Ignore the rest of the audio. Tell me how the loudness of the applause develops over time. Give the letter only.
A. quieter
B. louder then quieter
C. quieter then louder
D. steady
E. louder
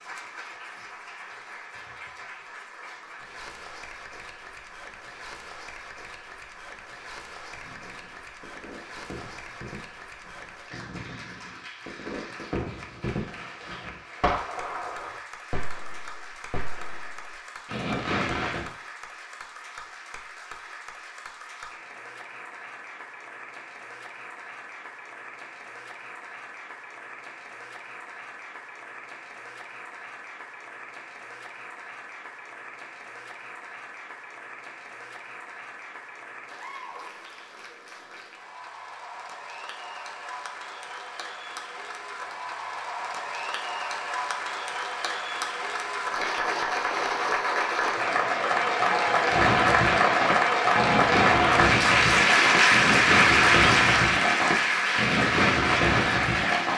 E.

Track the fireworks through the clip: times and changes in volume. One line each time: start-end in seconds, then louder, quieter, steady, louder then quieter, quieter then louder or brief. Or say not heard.
7.5-18.7 louder
49.2-56.7 steady.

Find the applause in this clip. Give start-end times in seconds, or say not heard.
0.0-56.7.